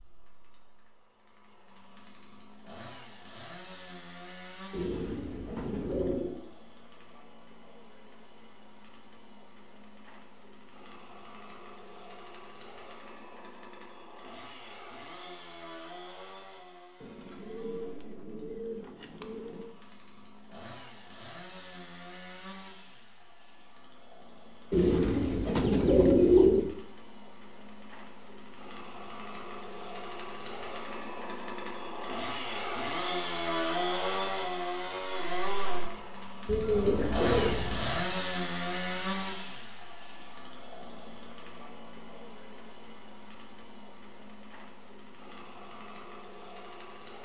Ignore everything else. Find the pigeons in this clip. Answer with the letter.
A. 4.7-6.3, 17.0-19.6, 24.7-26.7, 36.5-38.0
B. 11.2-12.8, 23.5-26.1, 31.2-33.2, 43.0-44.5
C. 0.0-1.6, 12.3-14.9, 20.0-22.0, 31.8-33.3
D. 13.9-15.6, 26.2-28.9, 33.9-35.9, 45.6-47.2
A.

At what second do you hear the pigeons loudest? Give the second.
26 s.